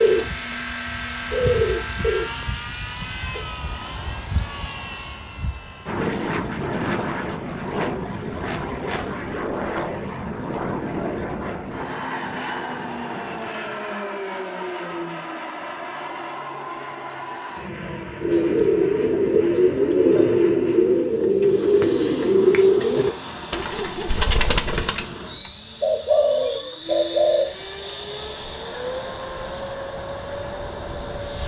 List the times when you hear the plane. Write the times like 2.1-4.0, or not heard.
0.0-31.4.